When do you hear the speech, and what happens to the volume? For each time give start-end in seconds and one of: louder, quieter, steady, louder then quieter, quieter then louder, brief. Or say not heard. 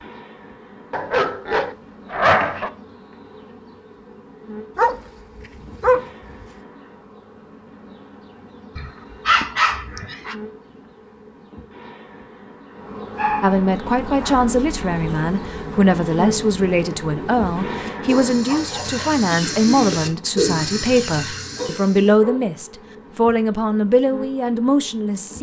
13.4-25.3 steady.